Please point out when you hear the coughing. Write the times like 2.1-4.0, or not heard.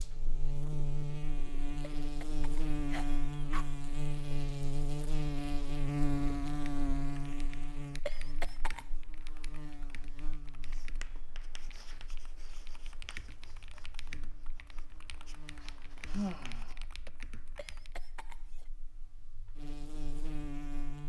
2.0-3.8, 8.1-8.8, 17.6-18.6.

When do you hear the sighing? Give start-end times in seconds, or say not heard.
16.1-17.1.